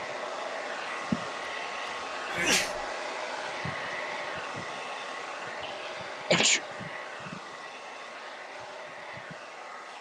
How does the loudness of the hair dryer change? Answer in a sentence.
The loudness of the hair dryer goes down.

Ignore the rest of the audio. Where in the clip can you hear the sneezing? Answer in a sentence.
You can hear the sneezing from 2.3 to 2.8 s and from 5.6 to 6.6 s.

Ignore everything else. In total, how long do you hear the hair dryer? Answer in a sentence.
The hair dryer can be heard for 10 seconds in total.